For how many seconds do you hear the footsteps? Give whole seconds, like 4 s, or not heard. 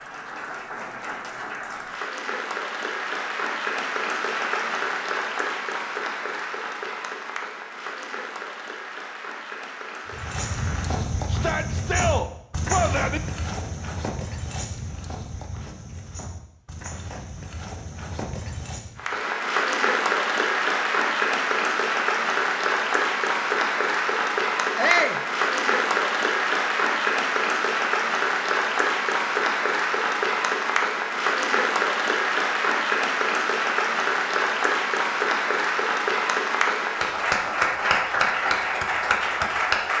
9 s.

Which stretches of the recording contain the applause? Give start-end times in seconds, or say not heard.
0.0-11.1, 18.9-39.9.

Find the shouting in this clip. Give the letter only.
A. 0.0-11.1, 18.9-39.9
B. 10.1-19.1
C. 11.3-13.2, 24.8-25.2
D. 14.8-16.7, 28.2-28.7
C.